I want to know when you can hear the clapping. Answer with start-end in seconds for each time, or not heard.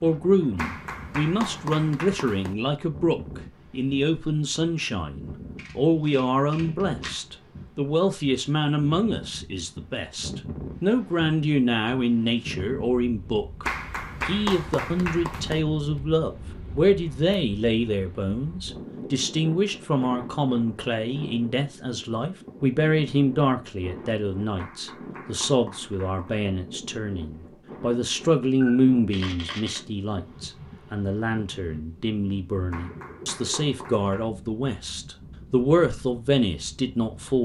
0.6-2.5, 13.6-15.6, 24.6-26.5, 32.7-34.3.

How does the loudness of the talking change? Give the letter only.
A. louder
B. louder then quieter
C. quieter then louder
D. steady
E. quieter
D.